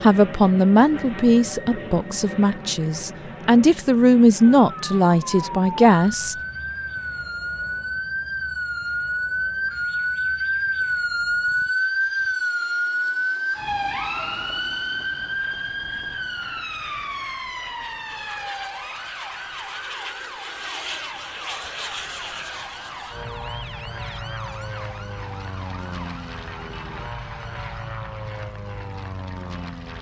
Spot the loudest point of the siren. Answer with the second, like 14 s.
12 s.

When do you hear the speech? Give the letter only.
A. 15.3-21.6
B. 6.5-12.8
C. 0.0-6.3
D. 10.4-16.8
C.